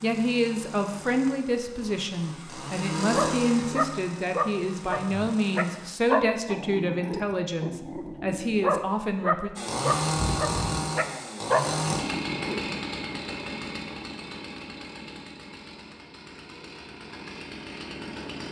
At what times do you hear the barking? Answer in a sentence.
You can hear the barking from 3.0 to 12.7 s.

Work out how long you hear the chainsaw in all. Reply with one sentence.
The chainsaw can be heard for 15 seconds in total.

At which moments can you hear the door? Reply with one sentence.
You can't hear the door here.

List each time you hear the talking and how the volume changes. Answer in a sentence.
You can hear the talking from 0.0 to 9.5 s, at a steady volume.